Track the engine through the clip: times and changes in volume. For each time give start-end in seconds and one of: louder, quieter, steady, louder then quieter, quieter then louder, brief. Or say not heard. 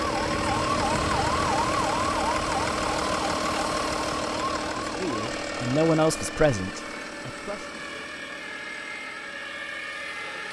0.0-10.4 quieter.